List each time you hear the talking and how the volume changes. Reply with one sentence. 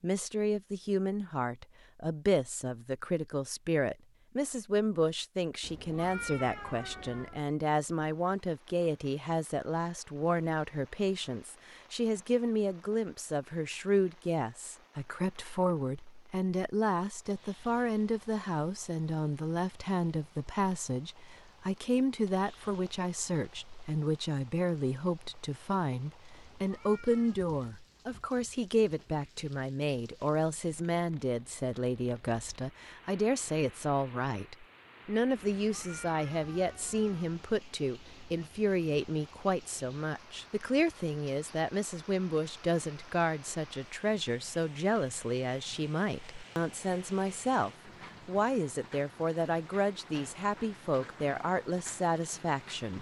The talking can be heard from 0.0 to 52.9 s, at a steady volume.